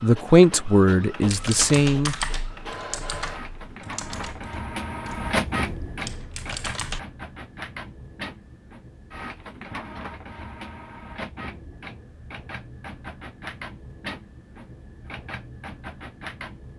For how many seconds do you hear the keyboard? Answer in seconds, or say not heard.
6 s.